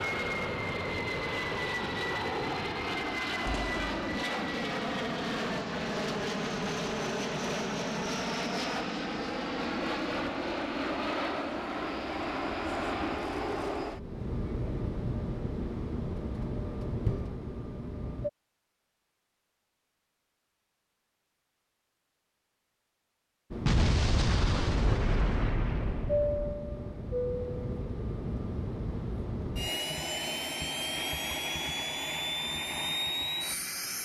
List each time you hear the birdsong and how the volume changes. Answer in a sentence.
The birdsong can't be heard in this clip.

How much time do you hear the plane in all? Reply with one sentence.
You can hear the plane for 29 seconds altogether.